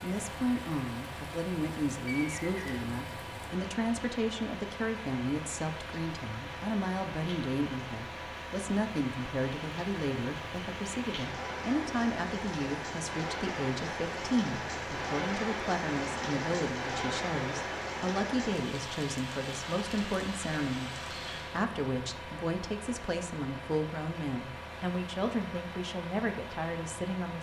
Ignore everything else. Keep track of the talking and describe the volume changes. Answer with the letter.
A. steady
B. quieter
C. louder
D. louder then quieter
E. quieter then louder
A.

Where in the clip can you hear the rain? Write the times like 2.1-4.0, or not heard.
0.0-21.6.